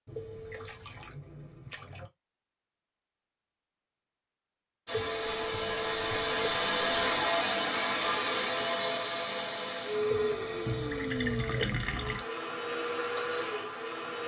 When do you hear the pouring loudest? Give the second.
12 s.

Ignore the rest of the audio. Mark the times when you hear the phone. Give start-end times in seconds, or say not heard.
0.1-0.8, 4.9-6.3, 10.1-11.7.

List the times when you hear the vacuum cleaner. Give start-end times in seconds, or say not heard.
4.8-14.2.